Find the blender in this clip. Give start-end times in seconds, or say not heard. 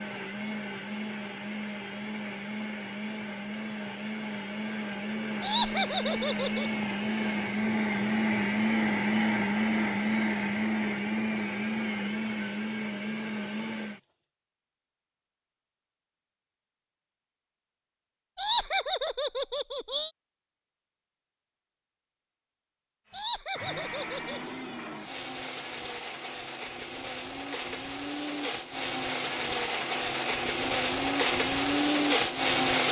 0.0-14.1, 23.1-32.8.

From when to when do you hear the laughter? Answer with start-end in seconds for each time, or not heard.
5.4-6.7, 18.4-20.1, 23.1-24.5.